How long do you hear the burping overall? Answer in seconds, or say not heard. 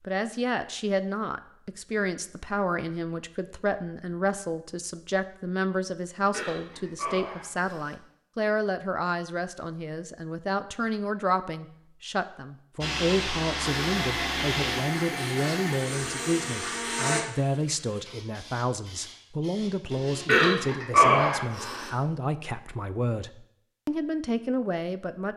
3 s.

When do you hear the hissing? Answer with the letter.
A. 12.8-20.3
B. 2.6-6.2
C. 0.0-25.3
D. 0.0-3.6
A.